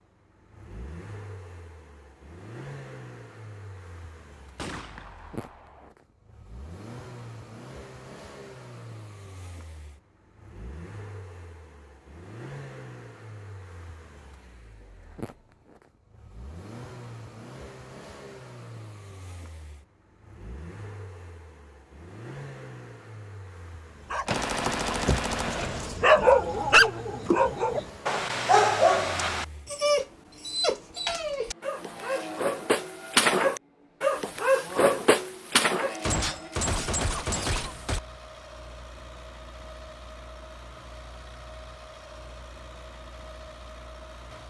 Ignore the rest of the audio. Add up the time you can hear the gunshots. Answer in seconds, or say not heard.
5 s.